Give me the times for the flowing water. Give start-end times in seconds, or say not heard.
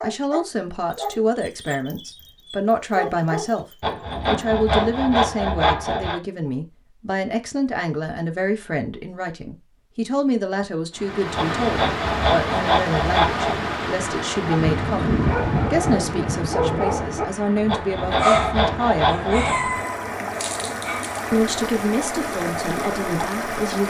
10.9-23.8.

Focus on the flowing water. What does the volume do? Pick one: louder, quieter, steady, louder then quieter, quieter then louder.
quieter then louder.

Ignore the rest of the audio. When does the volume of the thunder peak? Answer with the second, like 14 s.
15 s.